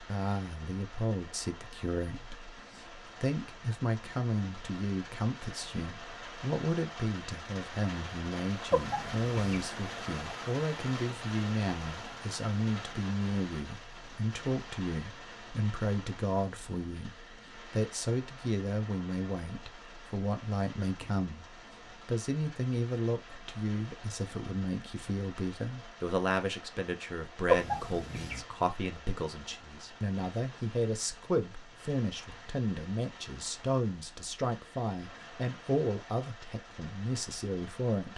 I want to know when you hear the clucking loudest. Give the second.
28 s.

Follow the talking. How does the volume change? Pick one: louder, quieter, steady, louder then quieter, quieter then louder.
steady.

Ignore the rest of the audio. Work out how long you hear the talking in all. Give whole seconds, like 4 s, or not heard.
38 s.